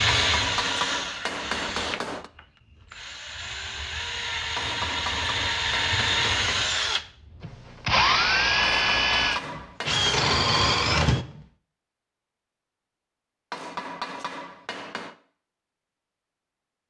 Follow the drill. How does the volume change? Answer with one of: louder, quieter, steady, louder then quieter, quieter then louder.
louder.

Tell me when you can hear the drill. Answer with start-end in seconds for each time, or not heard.
0.0-11.4.